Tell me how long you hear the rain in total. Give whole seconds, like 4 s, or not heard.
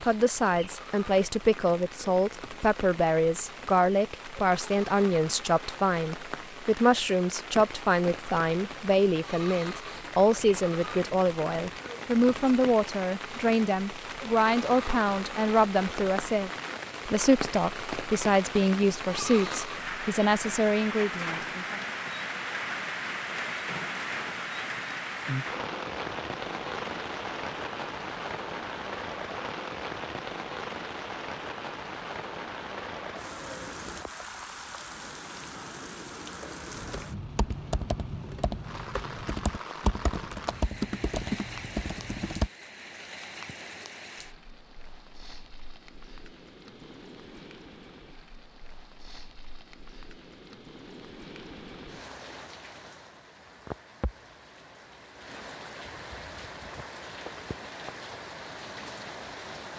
60 s.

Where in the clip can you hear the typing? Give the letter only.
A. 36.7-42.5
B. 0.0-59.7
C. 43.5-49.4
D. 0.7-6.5
A.